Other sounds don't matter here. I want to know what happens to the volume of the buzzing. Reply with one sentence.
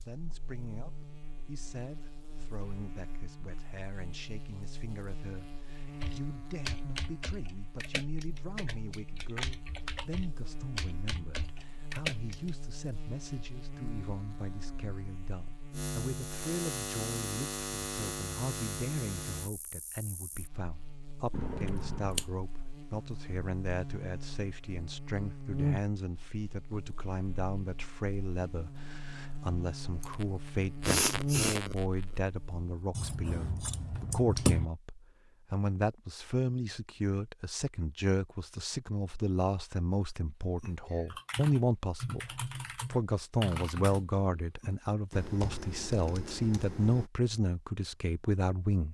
The volume of the buzzing goes up.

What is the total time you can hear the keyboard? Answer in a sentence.
The keyboard can be heard for 13 seconds in total.